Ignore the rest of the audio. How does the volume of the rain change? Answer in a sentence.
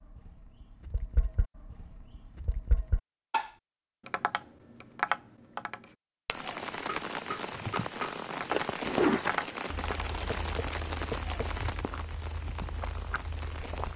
The loudness of the rain goes down.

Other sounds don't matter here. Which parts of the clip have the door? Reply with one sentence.
The door can't be heard in this clip.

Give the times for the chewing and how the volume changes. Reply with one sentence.
The chewing can be heard from 8.5 to 13.9 s, getting quieter.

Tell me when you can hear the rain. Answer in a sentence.
The rain can be heard from 6.3 to 13.9 s.